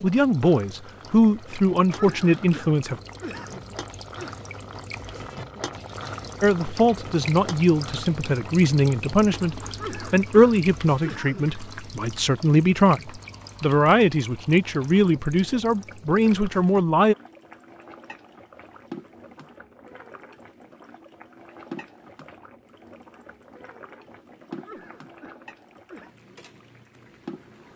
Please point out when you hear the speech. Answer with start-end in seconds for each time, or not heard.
0.0-3.0, 6.4-17.1.